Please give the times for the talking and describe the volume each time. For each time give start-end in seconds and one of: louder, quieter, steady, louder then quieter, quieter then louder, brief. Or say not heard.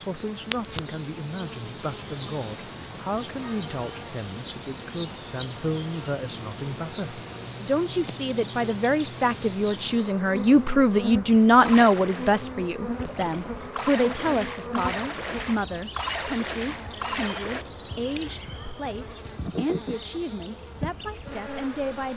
0.1-22.1 louder then quieter.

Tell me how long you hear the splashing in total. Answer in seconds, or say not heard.
6 s.